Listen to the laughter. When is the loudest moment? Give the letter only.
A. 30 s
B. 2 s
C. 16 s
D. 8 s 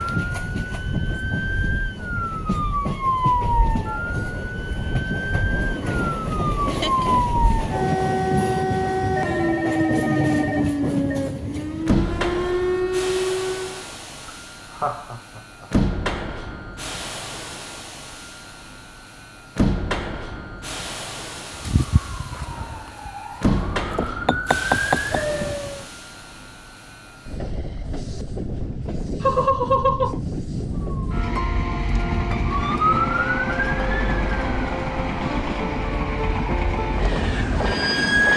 A.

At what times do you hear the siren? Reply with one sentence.
The siren can be heard from 0.0 to 13.8 s, from 21.5 to 25.9 s and from 30.9 to 38.3 s.